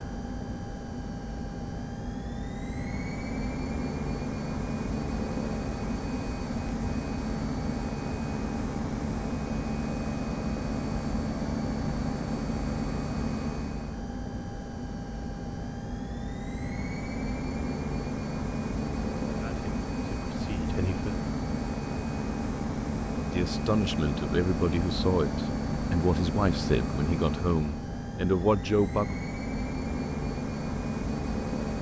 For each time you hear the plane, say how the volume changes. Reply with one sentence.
You can hear the plane from 0.0 to 31.7 s, at a steady volume.